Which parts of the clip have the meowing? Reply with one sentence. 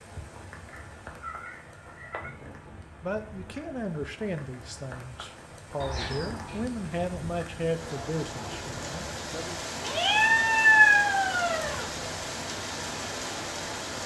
You can hear the meowing from 0.7 to 2.3 s, from 5.8 to 6.6 s and from 9.8 to 11.9 s.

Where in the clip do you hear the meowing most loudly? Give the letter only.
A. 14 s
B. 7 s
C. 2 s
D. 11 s
D.